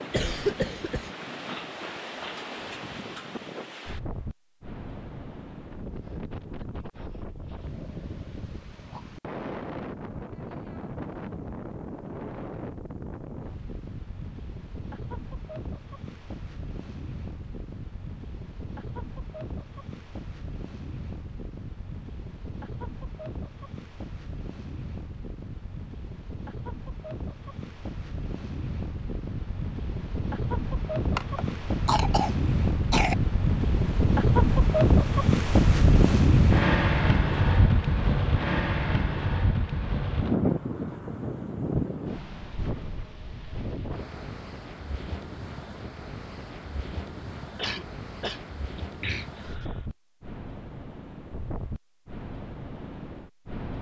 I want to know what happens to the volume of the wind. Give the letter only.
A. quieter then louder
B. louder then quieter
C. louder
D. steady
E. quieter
B.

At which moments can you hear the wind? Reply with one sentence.
You can hear the wind from 0.0 to 53.7 s.